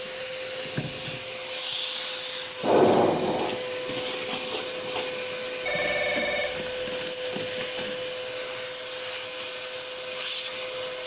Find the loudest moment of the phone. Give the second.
3 s.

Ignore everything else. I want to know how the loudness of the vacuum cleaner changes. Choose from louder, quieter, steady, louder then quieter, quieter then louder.
steady.